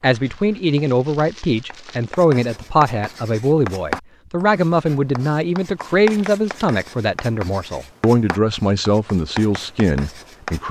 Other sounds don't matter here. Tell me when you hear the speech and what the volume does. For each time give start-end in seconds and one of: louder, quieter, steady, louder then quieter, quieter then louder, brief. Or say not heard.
0.0-10.6 steady.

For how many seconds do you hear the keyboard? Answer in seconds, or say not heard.
not heard.